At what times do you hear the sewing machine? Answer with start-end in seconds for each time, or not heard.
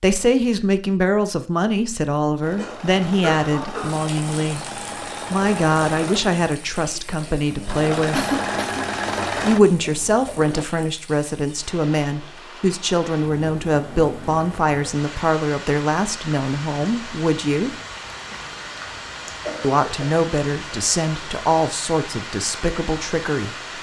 2.4-10.7.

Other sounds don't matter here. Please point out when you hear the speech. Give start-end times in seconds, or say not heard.
0.0-8.3, 9.4-17.8, 19.6-23.6.